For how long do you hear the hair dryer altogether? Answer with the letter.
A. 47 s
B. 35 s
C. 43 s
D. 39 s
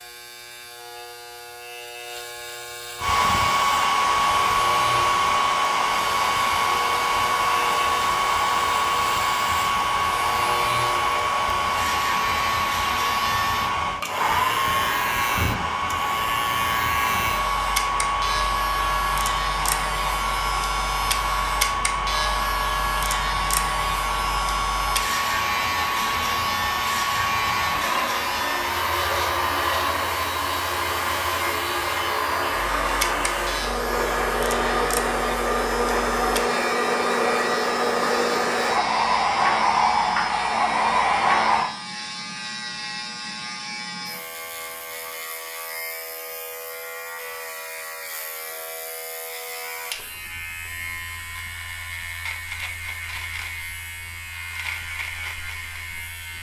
D.